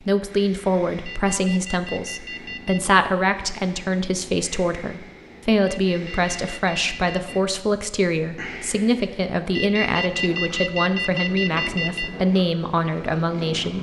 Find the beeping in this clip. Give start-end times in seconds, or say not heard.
1.1-2.9, 5.7-7.4, 9.6-12.1.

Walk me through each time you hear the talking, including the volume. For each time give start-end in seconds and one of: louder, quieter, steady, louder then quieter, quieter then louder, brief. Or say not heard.
0.1-13.7 steady.